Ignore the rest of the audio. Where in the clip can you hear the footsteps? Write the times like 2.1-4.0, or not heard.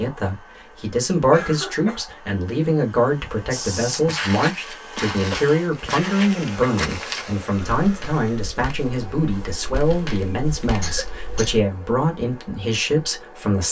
3.5-11.6.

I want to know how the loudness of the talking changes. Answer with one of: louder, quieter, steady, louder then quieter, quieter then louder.
steady.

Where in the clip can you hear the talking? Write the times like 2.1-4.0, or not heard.
0.0-13.6.